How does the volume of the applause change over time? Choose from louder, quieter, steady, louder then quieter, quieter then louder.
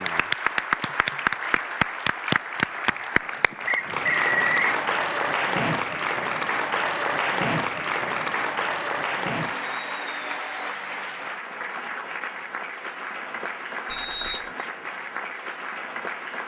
quieter.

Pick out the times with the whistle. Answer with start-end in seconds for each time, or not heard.
3.6-4.6, 13.8-14.5.